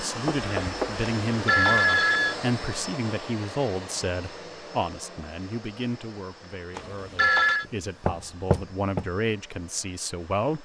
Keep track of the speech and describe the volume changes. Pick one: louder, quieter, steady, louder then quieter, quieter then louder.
quieter then louder.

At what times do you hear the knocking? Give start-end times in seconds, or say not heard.
0.2-1.1, 7.7-9.1.